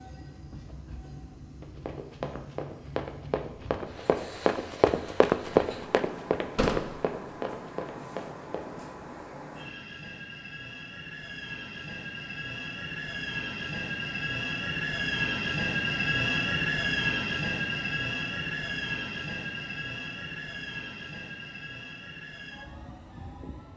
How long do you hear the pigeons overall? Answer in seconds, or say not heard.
not heard.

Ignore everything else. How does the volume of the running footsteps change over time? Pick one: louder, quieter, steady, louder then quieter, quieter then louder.
louder then quieter.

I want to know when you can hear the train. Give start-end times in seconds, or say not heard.
0.0-23.7.